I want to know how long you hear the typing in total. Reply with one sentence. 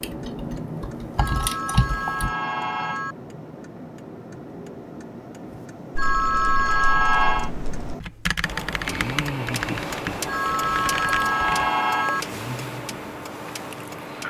You can hear the typing for 8 seconds altogether.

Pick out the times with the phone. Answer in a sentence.
The phone can be heard from 1.1 to 3.1 s, from 6.0 to 7.5 s and from 10.2 to 12.2 s.